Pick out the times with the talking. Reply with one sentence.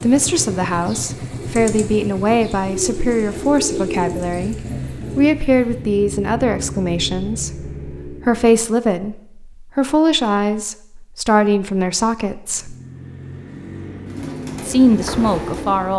You can hear the talking from 0.0 to 4.5 s, from 5.2 to 12.8 s and from 14.6 to 15.9 s.